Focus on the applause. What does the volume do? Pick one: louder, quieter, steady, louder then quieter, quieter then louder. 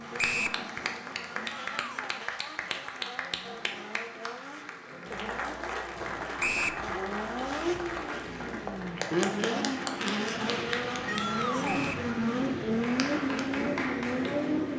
steady.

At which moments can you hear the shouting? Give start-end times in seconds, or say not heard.
1.4-2.1, 11.1-11.9.